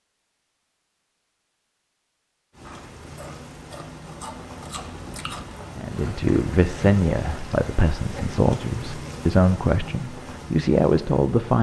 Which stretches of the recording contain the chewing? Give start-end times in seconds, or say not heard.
2.6-5.6.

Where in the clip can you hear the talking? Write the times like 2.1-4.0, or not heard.
5.8-11.5.